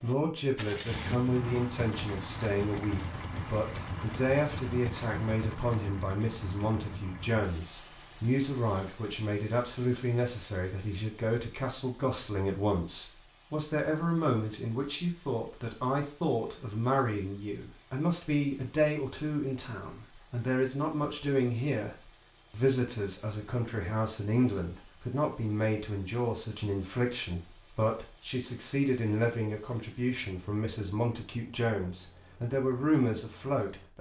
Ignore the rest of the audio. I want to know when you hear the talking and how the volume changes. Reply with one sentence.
The talking can be heard from 0.0 to 33.9 s, at a steady volume.